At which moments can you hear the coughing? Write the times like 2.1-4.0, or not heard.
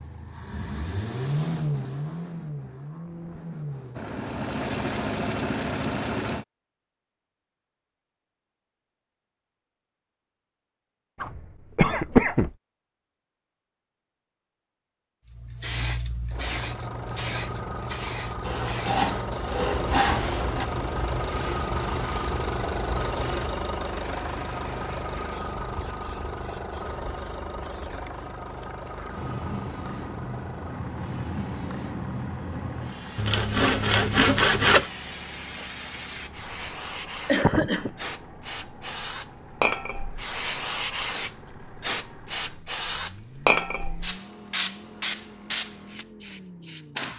11.2-12.5, 37.2-37.9.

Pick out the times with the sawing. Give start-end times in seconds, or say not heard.
18.4-20.6, 33.1-34.9.